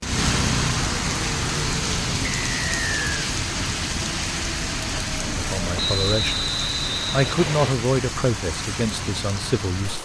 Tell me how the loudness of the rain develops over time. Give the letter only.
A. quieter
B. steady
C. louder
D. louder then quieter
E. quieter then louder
A.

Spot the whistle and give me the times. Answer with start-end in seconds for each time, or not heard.
2.2-3.0, 5.8-7.8.